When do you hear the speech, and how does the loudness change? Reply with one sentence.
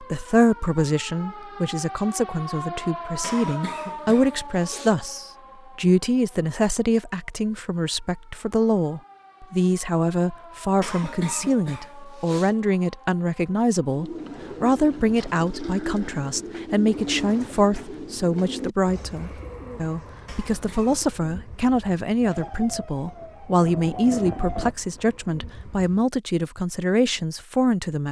You can hear the speech from 0.0 to 28.0 s, at a steady volume.